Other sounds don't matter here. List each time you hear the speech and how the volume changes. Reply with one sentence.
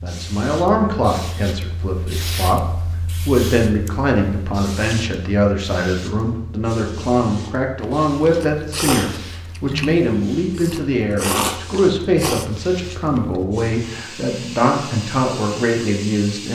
You can hear the speech from 0.0 to 16.5 s, at a steady volume.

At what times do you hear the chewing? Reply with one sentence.
You can hear the chewing from 7.8 to 13.4 s.